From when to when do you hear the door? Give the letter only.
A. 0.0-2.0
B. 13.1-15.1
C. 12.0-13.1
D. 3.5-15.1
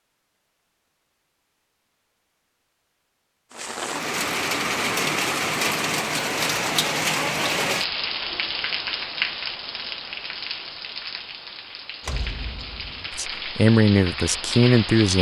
C.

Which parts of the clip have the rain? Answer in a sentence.
The rain can be heard from 3.5 to 15.1 s.